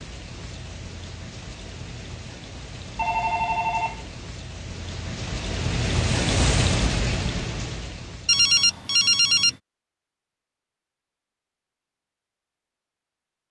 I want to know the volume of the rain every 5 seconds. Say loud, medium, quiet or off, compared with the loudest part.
quiet, loud, off.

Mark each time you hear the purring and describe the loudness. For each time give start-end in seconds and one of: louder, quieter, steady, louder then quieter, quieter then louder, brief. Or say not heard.
not heard.